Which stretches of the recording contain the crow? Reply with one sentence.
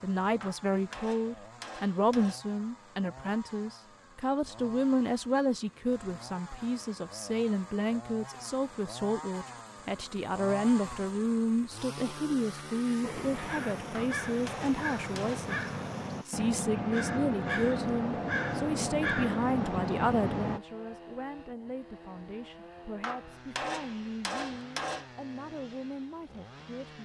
You can hear the crow from 13.0 to 20.6 s.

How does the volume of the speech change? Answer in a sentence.
The loudness of the speech goes down.